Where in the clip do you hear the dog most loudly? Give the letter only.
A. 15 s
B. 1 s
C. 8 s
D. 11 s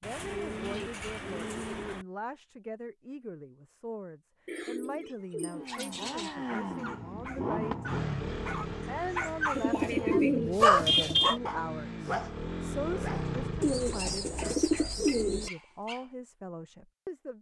D.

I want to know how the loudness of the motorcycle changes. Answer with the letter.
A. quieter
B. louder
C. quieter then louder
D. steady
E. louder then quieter
C.